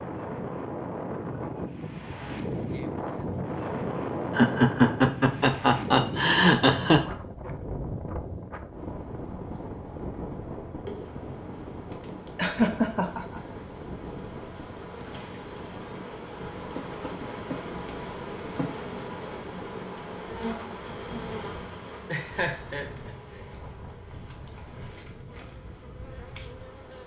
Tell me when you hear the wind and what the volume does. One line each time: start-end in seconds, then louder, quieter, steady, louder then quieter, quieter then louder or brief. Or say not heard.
0.0-27.0 quieter.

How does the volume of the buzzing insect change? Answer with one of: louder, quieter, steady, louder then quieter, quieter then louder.
louder then quieter.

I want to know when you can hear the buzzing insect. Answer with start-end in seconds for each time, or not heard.
8.8-27.0.